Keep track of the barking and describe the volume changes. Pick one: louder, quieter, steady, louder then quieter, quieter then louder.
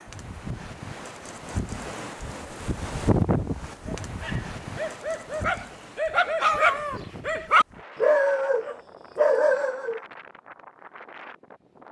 louder.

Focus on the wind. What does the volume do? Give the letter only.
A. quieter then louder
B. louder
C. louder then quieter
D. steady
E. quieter
C.